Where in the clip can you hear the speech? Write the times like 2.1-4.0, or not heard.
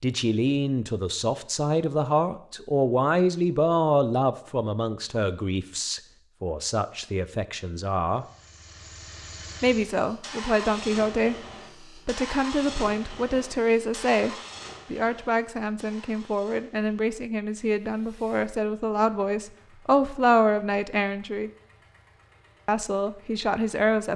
0.0-8.2, 9.6-21.5, 22.6-24.1.